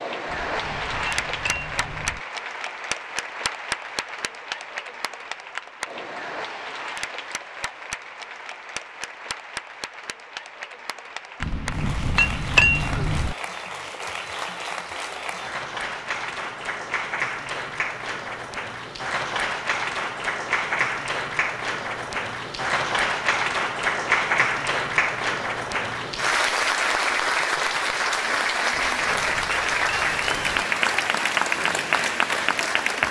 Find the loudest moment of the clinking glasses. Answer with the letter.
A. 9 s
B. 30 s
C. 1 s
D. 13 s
D.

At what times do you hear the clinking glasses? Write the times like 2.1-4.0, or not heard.
0.2-2.2, 11.4-13.3, 28.7-30.6.